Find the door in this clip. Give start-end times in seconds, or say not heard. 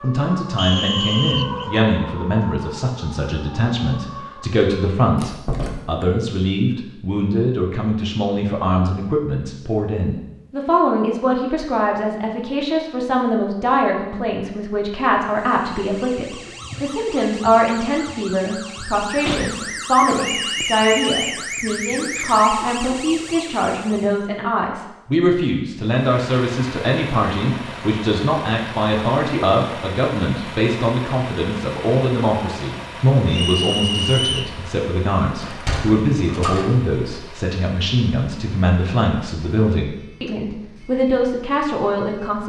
5.2-6.0, 19.2-19.6, 35.4-36.7.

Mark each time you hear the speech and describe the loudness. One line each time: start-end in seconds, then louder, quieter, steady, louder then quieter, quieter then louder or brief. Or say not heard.
0.0-42.4 steady.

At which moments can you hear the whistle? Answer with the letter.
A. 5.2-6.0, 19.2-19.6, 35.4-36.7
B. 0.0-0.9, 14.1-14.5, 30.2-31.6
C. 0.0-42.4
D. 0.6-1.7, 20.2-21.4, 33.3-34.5
D.